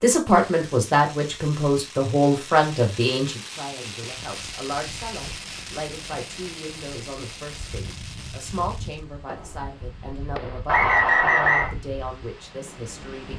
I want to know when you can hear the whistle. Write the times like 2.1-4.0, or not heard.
10.7-11.7.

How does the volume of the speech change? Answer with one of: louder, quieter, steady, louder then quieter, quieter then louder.
quieter.